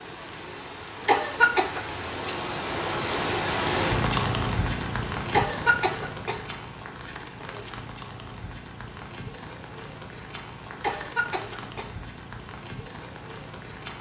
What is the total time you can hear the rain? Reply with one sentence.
You can hear the rain for 14 seconds altogether.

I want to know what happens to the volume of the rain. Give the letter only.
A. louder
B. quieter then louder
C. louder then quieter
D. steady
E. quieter
C.